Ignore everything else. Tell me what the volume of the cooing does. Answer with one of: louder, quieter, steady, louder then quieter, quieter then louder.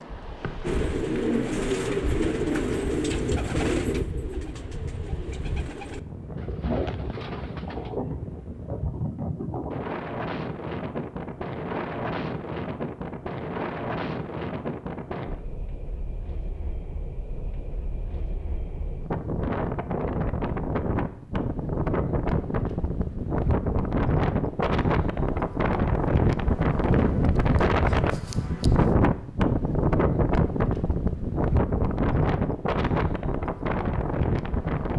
quieter.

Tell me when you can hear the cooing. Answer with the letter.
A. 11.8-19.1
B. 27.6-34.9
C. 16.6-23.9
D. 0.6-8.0
D.